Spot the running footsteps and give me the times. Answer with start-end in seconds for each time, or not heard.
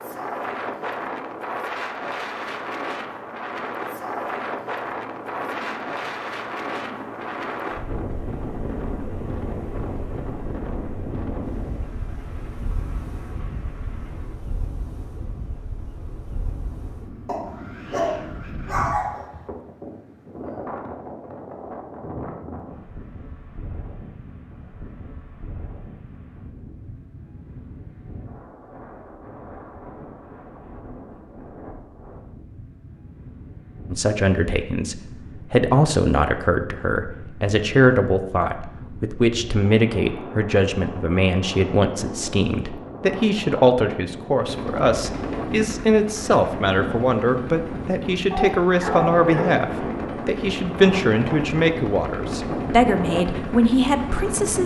not heard.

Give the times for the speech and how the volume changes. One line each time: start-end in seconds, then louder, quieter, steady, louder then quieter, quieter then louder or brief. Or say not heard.
33.9-54.6 steady.